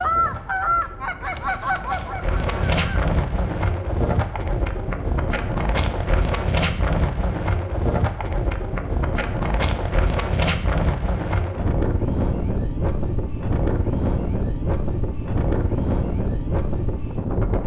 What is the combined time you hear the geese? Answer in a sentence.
The geese can be heard for 3 seconds in total.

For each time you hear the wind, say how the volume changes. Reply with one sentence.
The wind can be heard from 0.0 to 17.6 s, at a steady volume.